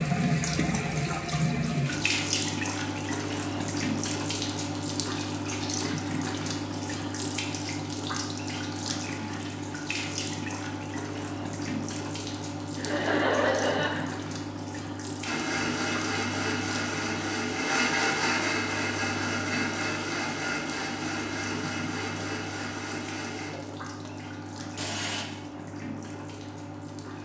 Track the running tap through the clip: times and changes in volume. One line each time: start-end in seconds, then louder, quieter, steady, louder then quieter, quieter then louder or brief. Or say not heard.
0.0-27.2 quieter.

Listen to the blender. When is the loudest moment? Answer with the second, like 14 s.
18 s.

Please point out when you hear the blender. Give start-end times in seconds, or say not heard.
15.2-25.2.